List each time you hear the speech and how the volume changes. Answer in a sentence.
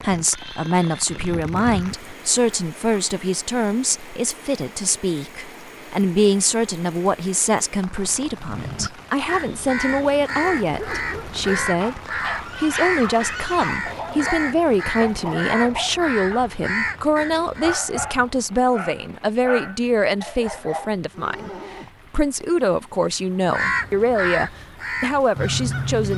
The speech can be heard from 0.0 to 26.1 s, at a steady volume.